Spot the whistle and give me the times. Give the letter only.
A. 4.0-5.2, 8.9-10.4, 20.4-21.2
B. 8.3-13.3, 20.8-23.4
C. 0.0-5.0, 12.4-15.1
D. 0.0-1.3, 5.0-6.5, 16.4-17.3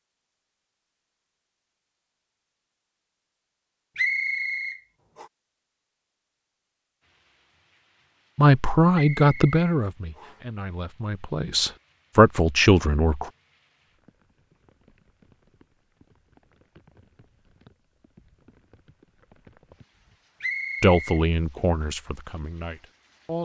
A.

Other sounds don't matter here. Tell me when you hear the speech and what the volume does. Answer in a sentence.
You can hear the speech from 8.3 to 13.3 s, getting quieter then louder; and briefly from 20.8 to 23.4 s.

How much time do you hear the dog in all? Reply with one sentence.
The dog can't be heard in this clip.